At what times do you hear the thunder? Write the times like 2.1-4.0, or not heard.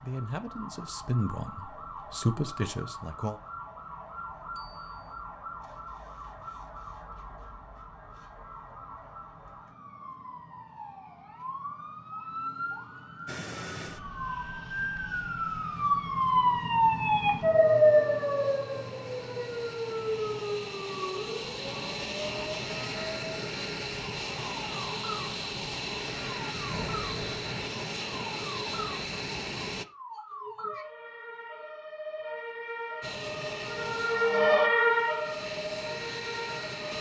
26.5-27.6.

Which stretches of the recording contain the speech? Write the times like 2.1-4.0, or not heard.
0.0-3.4.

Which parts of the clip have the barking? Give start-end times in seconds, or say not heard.
not heard.